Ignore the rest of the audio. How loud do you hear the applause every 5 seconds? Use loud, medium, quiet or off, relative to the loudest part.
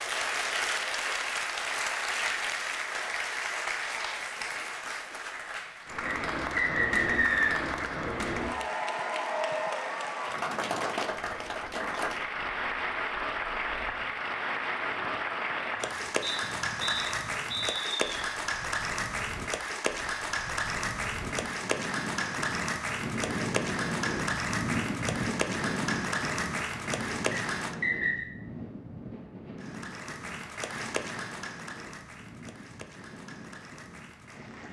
loud, loud, loud, loud, loud, loud, medium.